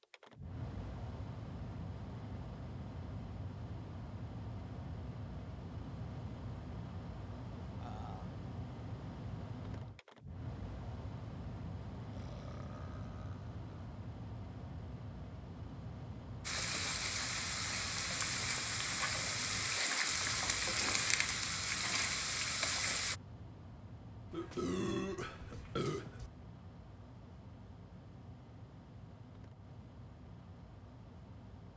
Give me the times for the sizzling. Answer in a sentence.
You can hear the sizzling from 16.4 to 23.1 s.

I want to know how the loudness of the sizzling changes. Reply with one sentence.
The volume of the sizzling stays about the same.